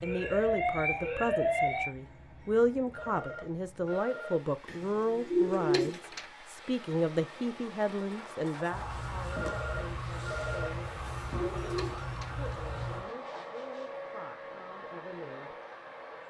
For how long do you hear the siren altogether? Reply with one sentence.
The siren can be heard for 6 seconds in total.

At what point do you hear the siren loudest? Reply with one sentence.
The loudest moment of the siren is at 1 second.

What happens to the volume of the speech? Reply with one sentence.
The loudness of the speech goes down.